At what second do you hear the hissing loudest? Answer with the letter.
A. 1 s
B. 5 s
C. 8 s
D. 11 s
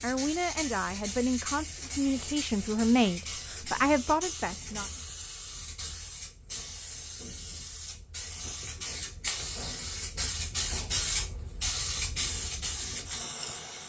D.